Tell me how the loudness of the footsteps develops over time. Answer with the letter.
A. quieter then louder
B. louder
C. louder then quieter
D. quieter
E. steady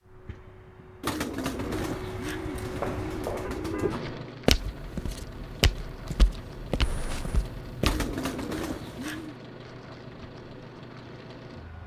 C.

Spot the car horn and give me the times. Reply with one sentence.
You can hear the car horn from 3.5 to 4.0 s and from 6.8 to 7.5 s.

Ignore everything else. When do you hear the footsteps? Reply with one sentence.
The footsteps can be heard from 2.5 to 8.1 s.